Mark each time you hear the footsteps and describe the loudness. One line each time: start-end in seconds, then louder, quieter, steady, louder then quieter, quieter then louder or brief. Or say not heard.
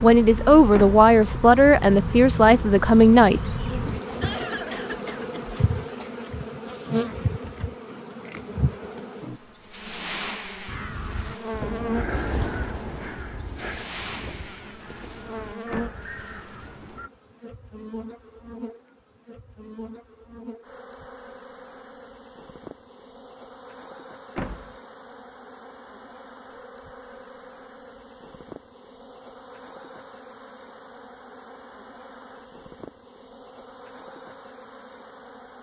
not heard.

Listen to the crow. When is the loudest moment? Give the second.
12 s.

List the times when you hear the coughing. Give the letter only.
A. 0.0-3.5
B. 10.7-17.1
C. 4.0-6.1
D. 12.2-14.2
C.